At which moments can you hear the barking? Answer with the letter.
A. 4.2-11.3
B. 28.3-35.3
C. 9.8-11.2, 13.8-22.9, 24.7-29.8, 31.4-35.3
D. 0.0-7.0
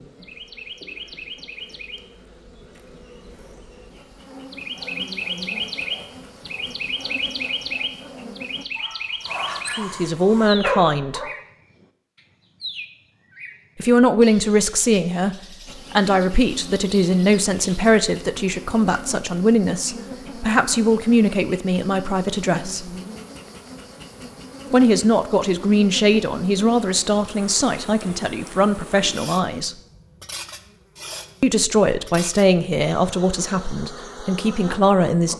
A.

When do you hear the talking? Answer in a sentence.
You can hear the talking from 9.8 to 11.2 s, from 13.8 to 22.9 s, from 24.7 to 29.8 s and from 31.4 to 35.3 s.